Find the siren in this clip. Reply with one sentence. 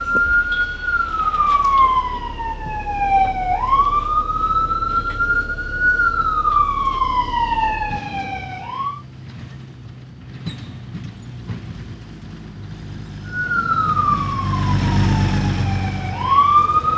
You can hear the siren from 0.0 to 9.0 s and from 13.2 to 16.9 s.